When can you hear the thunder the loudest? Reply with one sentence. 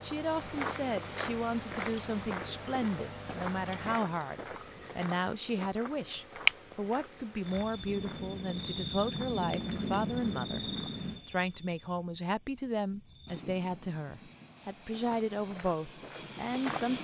The volume of the thunder peaks at 10 seconds.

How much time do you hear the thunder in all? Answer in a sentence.
The thunder can be heard for 3 seconds in total.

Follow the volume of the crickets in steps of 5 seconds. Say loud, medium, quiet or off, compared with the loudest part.
loud, loud, medium, medium.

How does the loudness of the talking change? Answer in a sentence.
The volume of the talking stays about the same.